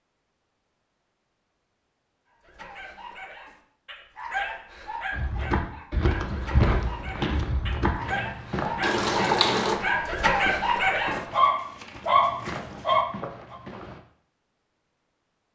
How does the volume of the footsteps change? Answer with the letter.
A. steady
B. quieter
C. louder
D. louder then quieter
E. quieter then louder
B.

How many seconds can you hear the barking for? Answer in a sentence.
You can hear the barking for 11 seconds altogether.